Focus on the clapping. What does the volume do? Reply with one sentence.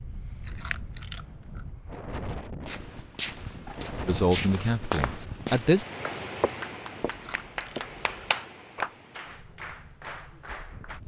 The loudness of the clapping goes up, then down.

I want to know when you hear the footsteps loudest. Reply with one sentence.
The volume of the footsteps peaks at 5 seconds.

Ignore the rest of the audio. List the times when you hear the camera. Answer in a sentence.
The camera can be heard from 0.3 to 1.6 s and from 7.0 to 8.3 s.